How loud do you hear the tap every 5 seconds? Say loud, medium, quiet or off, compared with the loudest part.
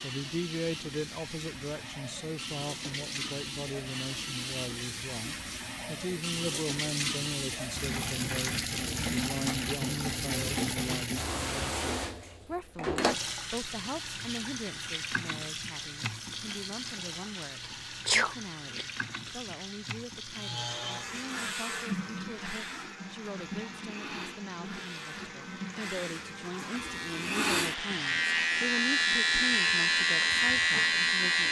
medium, loud, loud, medium, medium, medium, medium.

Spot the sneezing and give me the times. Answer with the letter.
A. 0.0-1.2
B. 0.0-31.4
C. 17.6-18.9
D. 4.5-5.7
C.